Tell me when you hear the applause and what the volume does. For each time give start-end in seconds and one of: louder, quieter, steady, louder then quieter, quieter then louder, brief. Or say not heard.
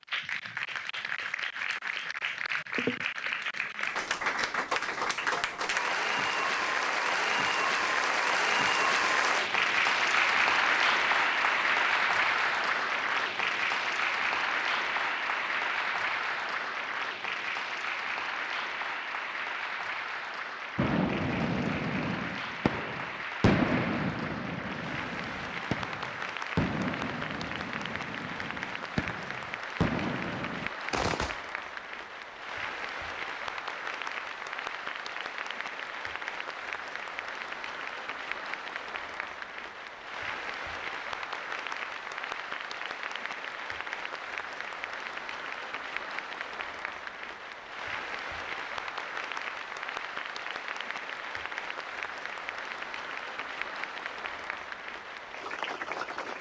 0.0-56.3 quieter.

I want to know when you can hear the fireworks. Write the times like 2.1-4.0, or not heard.
20.8-31.4.